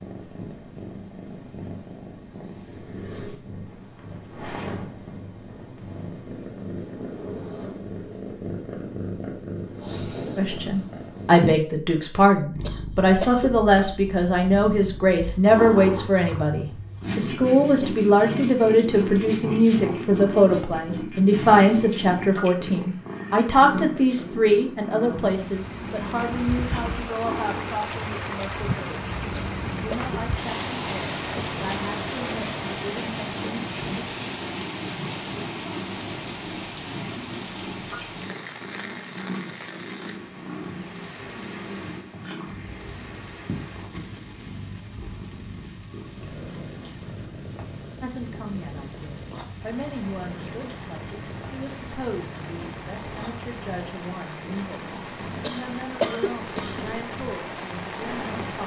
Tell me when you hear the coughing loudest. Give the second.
56 s.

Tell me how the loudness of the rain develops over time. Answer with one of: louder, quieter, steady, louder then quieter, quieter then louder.
quieter then louder.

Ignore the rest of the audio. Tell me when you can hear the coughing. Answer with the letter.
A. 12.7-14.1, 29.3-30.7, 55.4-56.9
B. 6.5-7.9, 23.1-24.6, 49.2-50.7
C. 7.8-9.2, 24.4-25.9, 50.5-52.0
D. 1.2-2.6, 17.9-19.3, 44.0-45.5
A.